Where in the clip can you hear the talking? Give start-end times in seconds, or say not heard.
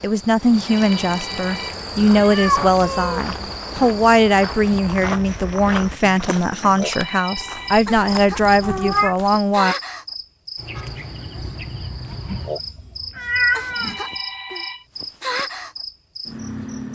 0.0-9.8.